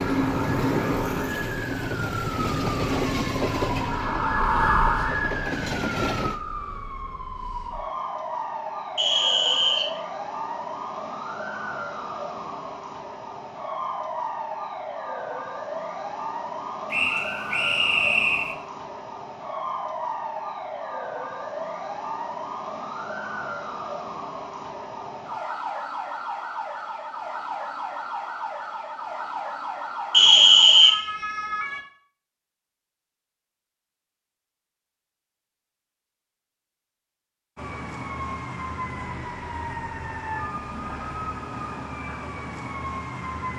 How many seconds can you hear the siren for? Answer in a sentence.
The siren can be heard for 38 seconds in total.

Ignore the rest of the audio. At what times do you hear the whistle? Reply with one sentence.
The whistle can be heard from 8.9 to 10.0 s, from 16.9 to 18.6 s and from 30.1 to 30.9 s.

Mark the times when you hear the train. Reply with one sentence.
The train can be heard from 0.0 to 6.4 s.